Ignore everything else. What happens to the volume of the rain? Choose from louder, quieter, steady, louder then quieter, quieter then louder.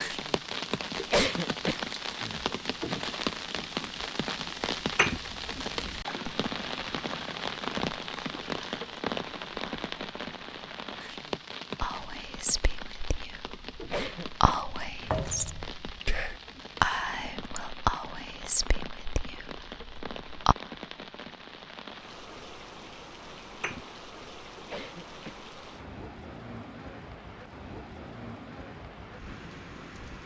quieter.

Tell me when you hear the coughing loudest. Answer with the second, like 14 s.
1 s.